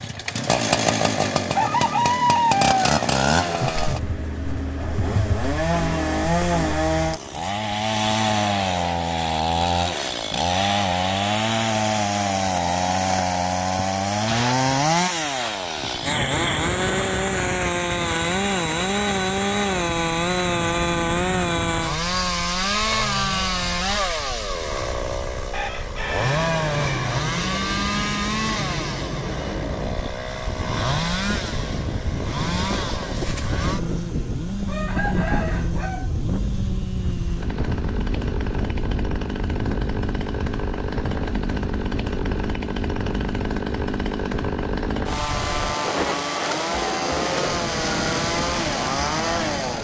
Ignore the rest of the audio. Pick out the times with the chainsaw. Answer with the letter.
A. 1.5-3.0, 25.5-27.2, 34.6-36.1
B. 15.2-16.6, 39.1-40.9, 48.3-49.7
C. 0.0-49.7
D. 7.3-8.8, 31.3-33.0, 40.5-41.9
C.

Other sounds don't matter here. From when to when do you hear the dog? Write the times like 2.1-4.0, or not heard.
not heard.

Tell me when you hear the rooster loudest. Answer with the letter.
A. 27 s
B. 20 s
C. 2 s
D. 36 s
C.